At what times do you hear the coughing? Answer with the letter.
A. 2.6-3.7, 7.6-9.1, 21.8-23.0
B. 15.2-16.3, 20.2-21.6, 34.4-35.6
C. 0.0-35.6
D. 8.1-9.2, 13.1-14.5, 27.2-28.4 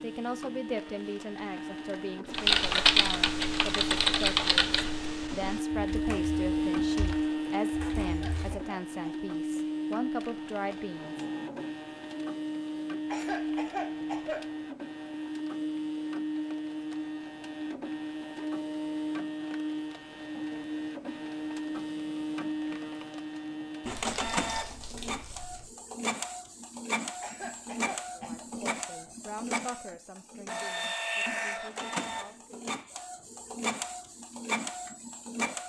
D.